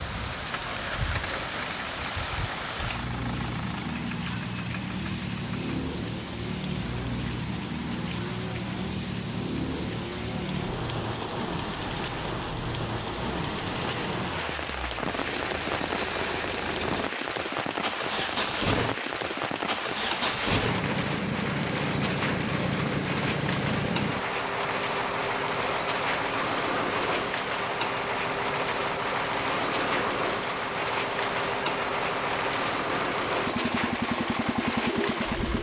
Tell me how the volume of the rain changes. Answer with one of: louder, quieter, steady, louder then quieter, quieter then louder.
steady.